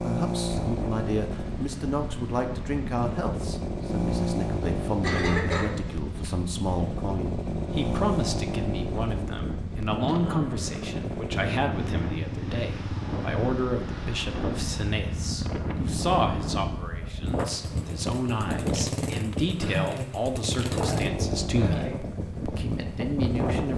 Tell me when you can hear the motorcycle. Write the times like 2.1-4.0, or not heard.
0.0-23.7.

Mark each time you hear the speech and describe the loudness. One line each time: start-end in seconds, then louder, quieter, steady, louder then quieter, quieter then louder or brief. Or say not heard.
0.0-23.7 steady.